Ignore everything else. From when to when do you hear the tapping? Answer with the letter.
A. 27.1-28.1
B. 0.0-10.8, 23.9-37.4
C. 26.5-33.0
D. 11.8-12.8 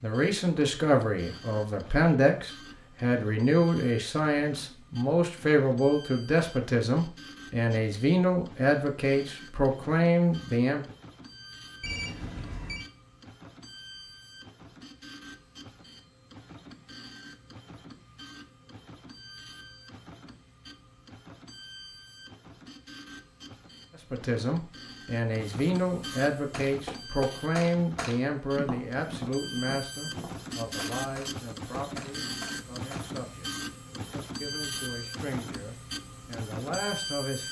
C.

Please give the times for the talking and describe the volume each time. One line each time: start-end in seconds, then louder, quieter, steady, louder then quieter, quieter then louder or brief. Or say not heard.
0.0-10.8 steady
23.9-37.4 quieter then louder.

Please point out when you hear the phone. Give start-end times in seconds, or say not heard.
11.8-12.8.